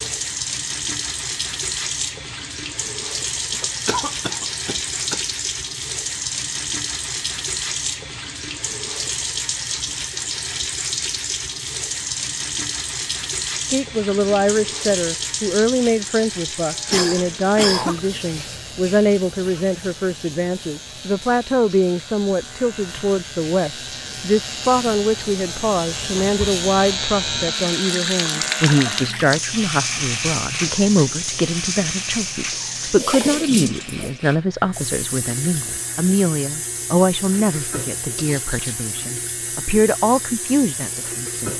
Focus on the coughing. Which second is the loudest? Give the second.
18 s.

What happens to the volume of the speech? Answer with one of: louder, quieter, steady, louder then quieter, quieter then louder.
steady.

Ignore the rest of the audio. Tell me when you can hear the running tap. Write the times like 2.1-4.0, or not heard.
0.0-41.5.